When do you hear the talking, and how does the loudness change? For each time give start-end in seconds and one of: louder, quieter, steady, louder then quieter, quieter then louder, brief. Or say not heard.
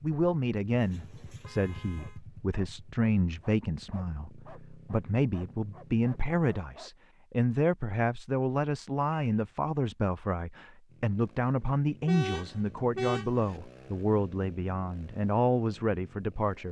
0.0-16.6 steady.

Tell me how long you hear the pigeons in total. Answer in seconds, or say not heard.
not heard.